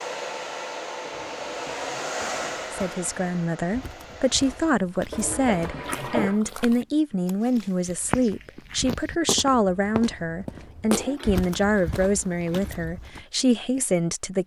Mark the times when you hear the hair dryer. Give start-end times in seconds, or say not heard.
0.0-4.8.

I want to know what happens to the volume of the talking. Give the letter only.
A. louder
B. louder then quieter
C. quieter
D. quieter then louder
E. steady
E.